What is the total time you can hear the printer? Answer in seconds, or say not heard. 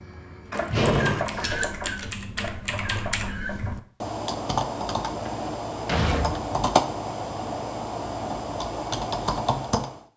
4 s.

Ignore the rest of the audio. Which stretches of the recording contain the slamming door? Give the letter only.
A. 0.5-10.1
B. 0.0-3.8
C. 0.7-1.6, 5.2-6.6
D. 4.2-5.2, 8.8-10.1
C.